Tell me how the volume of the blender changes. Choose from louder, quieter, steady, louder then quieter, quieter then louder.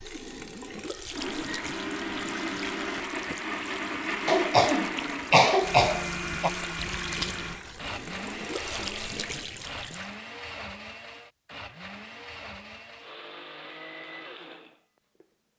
quieter.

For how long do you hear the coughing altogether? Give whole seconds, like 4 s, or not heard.
2 s.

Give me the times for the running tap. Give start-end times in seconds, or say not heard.
0.0-10.2.